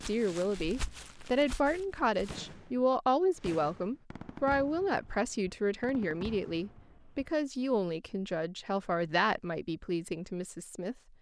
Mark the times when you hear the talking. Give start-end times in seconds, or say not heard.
0.1-10.9.